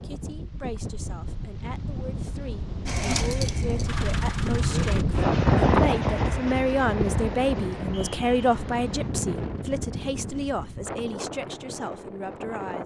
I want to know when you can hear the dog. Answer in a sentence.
You can't hear the dog here.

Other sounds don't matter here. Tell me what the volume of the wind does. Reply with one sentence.
The loudness of the wind goes up, then down.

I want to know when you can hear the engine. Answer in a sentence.
The engine can be heard from 2.9 to 5.0 s.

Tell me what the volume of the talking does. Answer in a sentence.
The loudness of the talking goes up, then down.